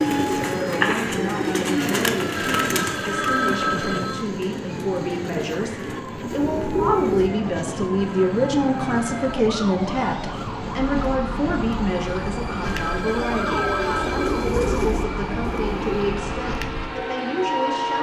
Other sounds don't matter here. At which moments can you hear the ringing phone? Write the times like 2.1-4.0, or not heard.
2.4-4.2, 8.0-9.4, 12.6-14.6.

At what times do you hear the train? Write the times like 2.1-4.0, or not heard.
0.0-17.9.